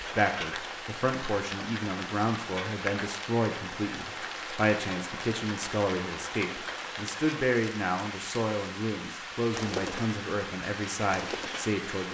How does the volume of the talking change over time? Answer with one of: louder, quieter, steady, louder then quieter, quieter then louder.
steady.